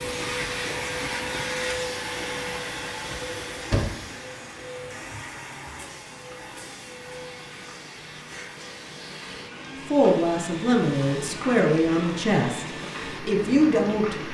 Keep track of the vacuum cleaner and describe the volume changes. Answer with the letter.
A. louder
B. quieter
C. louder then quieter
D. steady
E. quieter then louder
B.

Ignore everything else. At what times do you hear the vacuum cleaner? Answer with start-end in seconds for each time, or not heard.
0.0-14.2.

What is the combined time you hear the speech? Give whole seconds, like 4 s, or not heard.
4 s.